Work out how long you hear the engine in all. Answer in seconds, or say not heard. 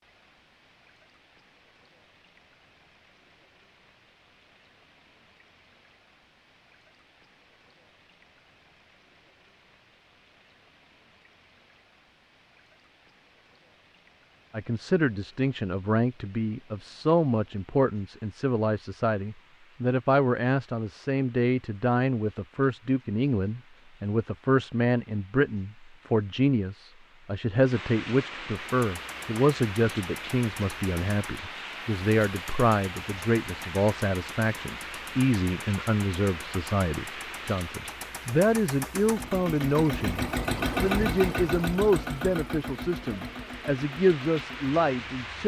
17 s.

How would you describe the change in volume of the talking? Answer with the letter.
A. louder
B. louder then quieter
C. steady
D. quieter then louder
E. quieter
C.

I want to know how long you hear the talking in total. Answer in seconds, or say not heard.
31 s.